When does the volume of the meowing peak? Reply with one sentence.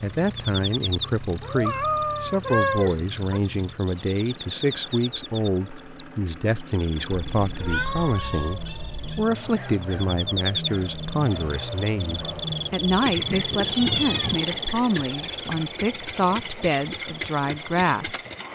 The volume of the meowing peaks at 3 seconds.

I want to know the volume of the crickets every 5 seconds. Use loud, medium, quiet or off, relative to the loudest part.
medium, quiet, loud, medium.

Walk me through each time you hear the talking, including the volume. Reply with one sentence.
The talking can be heard from 0.0 to 18.2 s, at a steady volume.